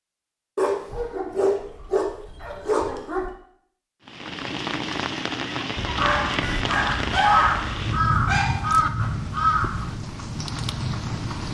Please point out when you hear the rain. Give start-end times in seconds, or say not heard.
4.0-11.4.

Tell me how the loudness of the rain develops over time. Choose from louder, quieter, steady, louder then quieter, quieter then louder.
steady.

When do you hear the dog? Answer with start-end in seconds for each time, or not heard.
0.6-3.3, 5.8-8.7.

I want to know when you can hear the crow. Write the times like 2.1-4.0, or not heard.
6.4-9.9.